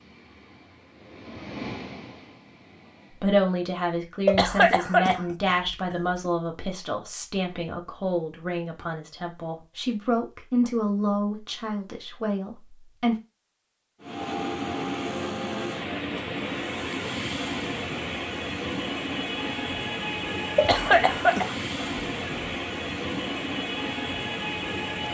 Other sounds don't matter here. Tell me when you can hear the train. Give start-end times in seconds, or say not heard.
0.0-3.3, 14.0-25.0.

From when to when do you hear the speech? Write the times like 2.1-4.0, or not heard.
3.1-13.2.